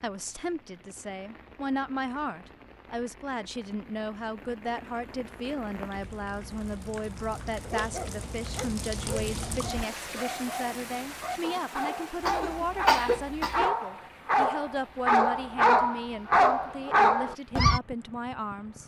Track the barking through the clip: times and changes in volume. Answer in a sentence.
The barking can be heard from 7.6 to 17.8 s, getting louder.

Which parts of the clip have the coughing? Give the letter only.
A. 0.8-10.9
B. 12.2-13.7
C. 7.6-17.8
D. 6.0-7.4
B.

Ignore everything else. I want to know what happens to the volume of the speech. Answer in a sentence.
The volume of the speech stays about the same.